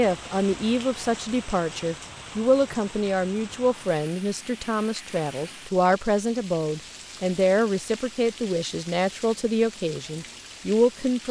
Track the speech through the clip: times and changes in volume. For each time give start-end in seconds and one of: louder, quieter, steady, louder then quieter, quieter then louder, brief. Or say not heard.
0.0-11.2 steady.